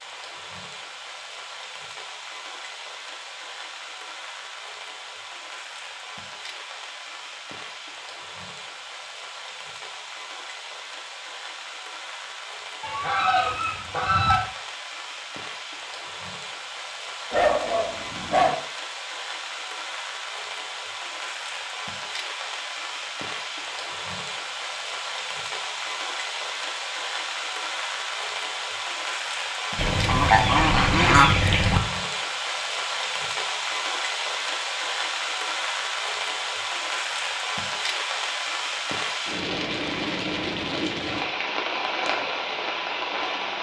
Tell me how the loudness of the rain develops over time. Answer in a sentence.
The loudness of the rain goes up.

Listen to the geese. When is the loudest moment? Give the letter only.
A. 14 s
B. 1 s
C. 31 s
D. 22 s
C.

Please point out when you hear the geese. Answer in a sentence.
You can hear the geese from 12.8 to 14.4 s and from 29.8 to 31.8 s.